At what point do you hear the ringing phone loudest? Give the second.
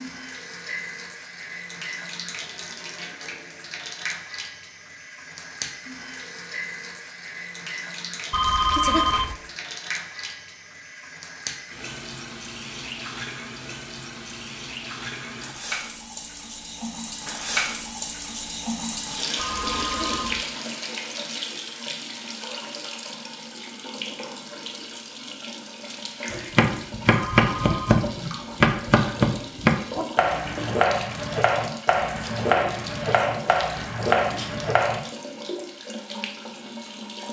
9 s.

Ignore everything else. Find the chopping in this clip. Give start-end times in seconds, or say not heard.
26.3-35.0.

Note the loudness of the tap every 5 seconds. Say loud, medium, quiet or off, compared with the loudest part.
medium, medium, medium, loud, loud, medium, medium, medium.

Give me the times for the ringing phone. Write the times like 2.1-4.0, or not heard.
8.3-9.3, 19.4-20.4, 27.1-28.1.